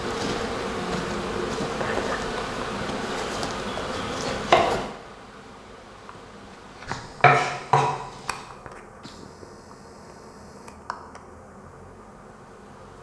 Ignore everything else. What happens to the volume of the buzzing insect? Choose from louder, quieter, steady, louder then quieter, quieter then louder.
quieter.